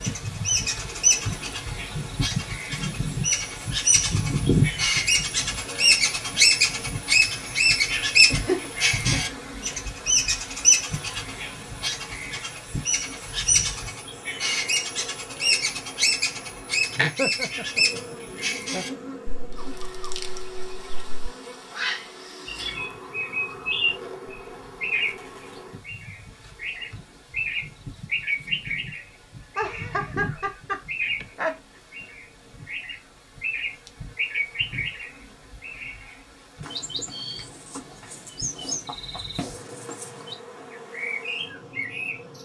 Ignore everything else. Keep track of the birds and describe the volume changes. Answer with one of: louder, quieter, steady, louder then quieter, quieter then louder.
quieter.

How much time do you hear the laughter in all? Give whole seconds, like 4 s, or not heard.
5 s.